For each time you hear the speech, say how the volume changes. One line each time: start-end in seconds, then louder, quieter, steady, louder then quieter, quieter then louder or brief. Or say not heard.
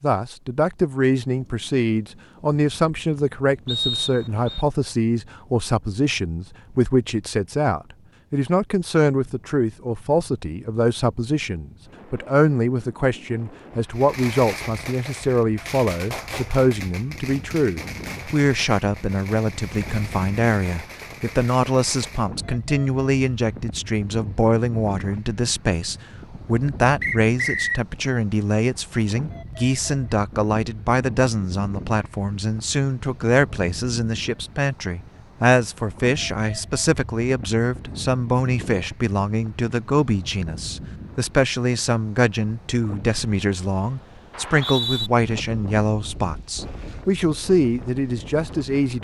0.0-49.0 steady.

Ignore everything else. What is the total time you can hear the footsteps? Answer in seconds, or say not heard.
not heard.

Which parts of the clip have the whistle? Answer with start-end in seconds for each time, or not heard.
3.6-4.7, 27.0-27.8, 44.3-45.1.